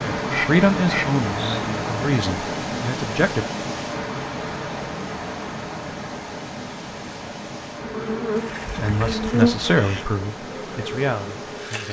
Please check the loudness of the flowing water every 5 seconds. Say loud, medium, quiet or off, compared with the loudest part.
loud, medium, medium.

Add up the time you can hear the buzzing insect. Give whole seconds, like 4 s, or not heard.
4 s.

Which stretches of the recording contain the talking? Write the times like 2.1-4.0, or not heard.
0.0-3.5, 8.8-11.8.